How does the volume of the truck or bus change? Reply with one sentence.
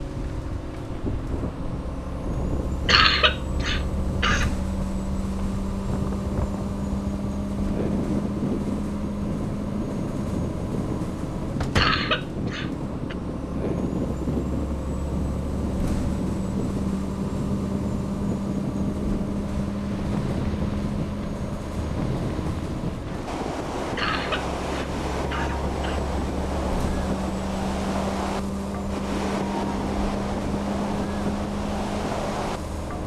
The loudness of the truck or bus stays about the same.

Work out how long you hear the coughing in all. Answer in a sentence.
The coughing can be heard for 5 seconds in total.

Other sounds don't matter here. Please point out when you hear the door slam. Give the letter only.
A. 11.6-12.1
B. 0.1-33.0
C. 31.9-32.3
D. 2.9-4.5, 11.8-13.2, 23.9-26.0
A.